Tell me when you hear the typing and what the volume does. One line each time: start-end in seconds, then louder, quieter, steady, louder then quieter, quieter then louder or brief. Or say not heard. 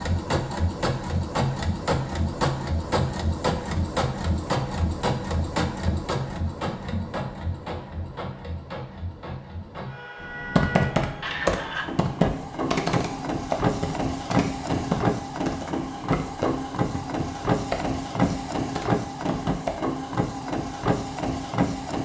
10.3-19.8 quieter.